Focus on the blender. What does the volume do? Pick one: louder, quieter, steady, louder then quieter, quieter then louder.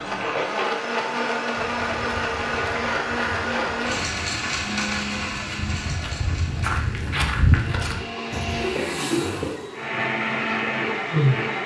quieter then louder.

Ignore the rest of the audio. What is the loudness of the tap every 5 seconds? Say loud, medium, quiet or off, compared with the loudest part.
off, loud, medium.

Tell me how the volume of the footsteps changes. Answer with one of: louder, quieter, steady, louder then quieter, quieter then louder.
louder.